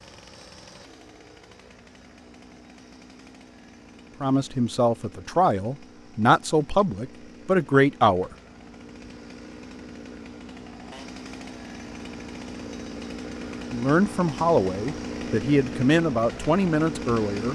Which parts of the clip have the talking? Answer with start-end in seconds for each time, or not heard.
4.2-8.3, 13.7-17.5.